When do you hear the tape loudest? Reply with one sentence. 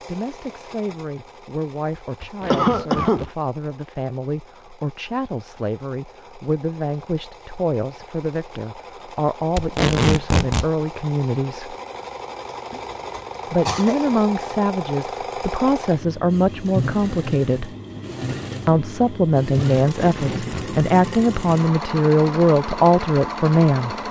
The loudest moment of the tape is at 10 seconds.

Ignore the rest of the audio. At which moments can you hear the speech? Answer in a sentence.
You can hear the speech from 0.0 to 11.8 s, from 13.5 to 17.7 s and from 18.6 to 23.9 s.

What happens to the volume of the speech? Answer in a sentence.
The loudness of the speech goes up.